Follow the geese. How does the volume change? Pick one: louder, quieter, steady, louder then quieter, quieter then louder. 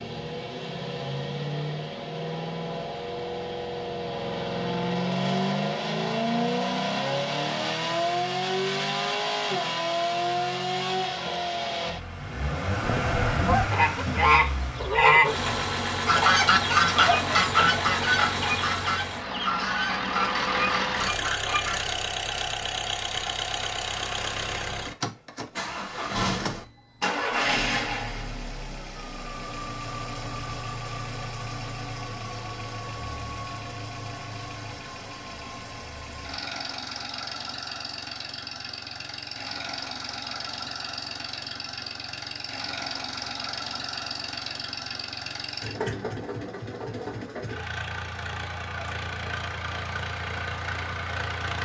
quieter.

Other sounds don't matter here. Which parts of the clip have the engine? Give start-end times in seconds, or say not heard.
0.0-51.5.